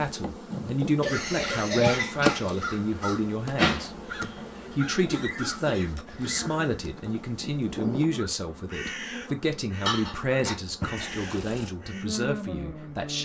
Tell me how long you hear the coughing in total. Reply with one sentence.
The coughing can be heard for 4 seconds in total.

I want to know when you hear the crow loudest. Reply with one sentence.
The loudest moment of the crow is at 4 seconds.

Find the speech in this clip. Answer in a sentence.
The speech can be heard from 0.0 to 3.9 s and from 4.8 to 13.1 s.